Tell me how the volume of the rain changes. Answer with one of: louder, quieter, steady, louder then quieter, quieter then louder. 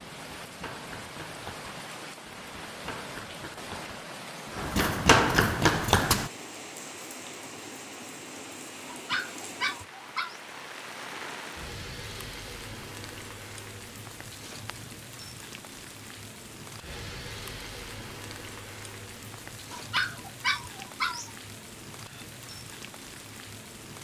steady.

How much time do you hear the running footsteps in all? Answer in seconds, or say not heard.
6 s.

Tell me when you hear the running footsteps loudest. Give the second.
5 s.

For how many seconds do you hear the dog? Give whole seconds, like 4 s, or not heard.
3 s.